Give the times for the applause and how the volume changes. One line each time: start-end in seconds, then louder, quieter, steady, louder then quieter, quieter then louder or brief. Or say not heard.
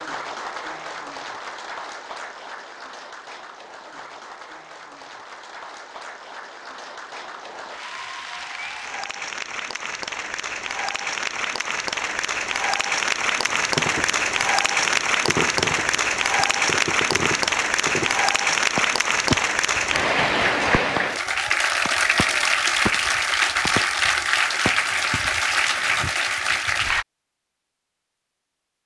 0.0-27.1 louder.